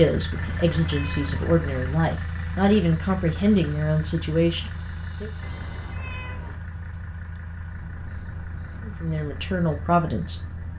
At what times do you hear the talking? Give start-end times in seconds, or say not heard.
0.0-5.3, 8.8-10.6.